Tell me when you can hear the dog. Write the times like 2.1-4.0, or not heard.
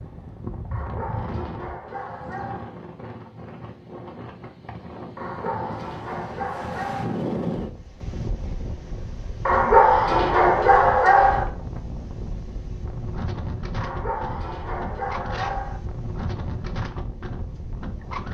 0.7-2.7, 5.2-7.2, 9.4-11.4, 13.8-15.8.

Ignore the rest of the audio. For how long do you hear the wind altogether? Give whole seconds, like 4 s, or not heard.
18 s.